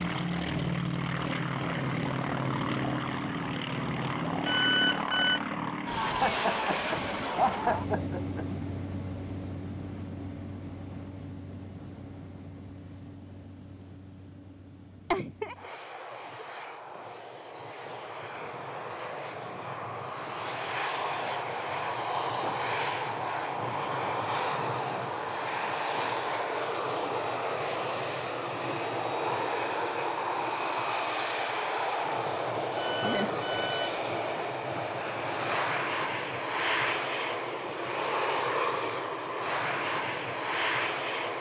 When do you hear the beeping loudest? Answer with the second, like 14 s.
5 s.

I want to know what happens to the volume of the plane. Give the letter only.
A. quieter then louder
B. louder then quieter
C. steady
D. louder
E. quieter
A.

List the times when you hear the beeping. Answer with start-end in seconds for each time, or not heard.
4.5-5.4, 32.8-34.0.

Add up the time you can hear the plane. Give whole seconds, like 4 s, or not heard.
41 s.